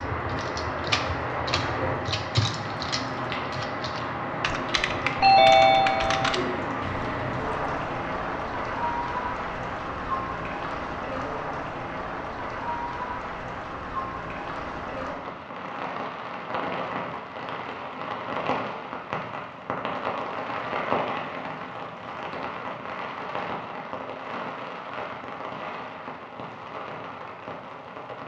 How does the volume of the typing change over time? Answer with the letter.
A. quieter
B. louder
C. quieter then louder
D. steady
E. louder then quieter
C.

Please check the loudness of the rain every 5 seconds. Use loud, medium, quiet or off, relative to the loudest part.
loud, loud, loud, loud, loud, medium.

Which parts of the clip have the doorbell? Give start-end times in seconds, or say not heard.
5.2-6.3.